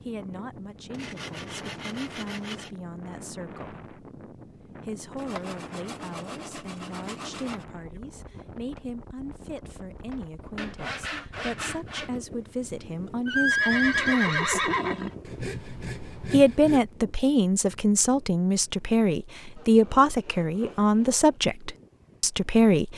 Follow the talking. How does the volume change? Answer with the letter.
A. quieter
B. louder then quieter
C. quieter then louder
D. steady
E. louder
E.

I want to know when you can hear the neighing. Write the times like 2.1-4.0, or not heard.
13.2-15.2.